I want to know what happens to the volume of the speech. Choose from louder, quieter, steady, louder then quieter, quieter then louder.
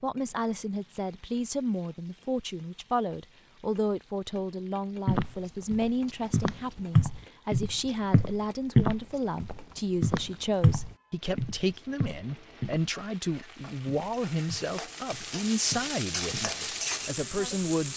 steady.